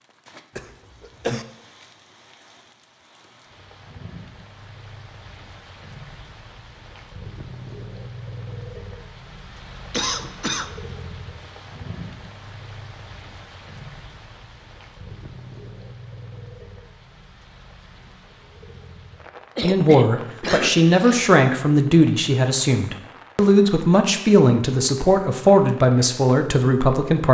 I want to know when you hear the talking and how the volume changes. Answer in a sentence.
You can hear the talking from 19.6 to 27.2 s, at a steady volume.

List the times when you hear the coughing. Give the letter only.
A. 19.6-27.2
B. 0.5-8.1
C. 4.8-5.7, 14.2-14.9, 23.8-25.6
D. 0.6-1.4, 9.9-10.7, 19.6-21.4
D.